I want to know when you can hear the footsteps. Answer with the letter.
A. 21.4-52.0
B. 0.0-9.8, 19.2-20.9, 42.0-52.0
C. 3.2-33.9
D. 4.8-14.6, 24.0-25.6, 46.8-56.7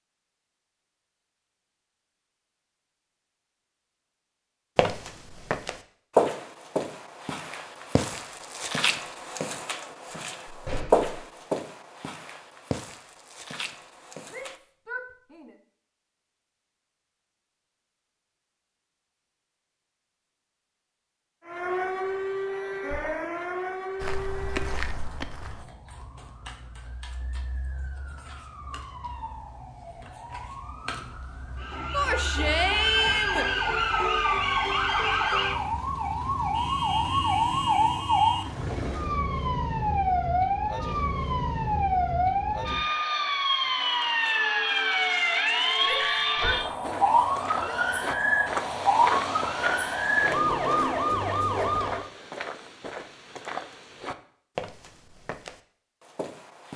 D.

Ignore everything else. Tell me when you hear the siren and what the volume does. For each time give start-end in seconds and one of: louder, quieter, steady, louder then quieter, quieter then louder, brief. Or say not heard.
21.4-52.0 louder.